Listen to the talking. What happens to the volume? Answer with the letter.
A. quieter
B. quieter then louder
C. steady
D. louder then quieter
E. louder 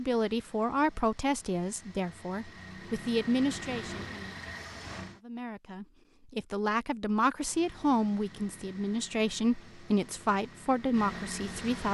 C.